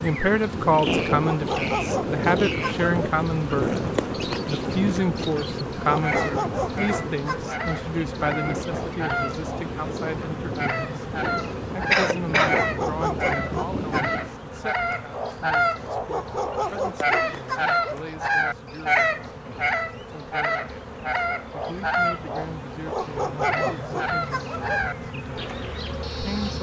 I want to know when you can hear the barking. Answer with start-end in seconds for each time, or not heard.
1.2-2.9, 5.8-7.5, 12.5-14.2, 16.1-18.0, 22.9-24.9.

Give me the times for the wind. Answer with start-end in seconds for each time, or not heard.
0.0-14.4.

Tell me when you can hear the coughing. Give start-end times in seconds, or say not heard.
11.9-12.7.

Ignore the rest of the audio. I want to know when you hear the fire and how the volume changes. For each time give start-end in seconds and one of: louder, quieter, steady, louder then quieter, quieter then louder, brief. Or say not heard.
not heard.